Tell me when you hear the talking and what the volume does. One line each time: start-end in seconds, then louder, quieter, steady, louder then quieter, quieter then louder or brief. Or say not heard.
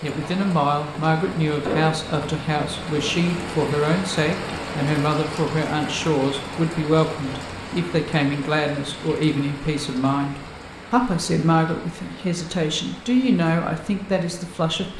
0.0-14.9 steady.